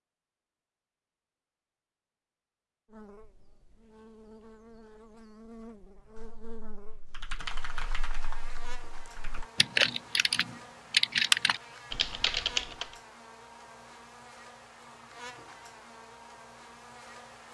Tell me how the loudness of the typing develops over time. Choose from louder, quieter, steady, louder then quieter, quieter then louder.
louder.